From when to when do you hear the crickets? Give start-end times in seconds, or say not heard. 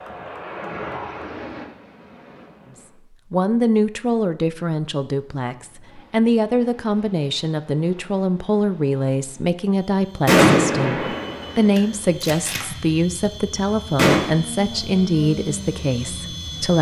not heard.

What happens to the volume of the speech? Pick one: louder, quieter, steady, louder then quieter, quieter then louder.
steady.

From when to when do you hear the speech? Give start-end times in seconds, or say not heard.
3.3-16.7.